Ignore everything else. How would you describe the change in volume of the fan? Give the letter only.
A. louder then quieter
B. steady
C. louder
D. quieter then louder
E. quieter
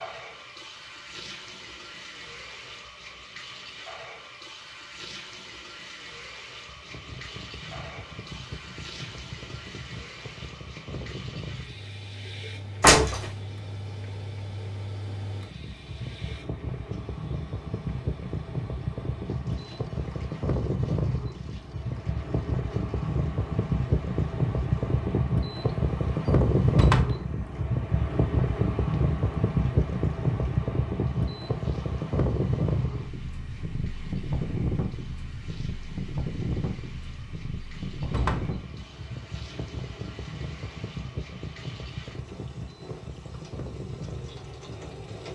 A.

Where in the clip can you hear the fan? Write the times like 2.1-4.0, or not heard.
6.7-45.3.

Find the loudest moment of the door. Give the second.
13 s.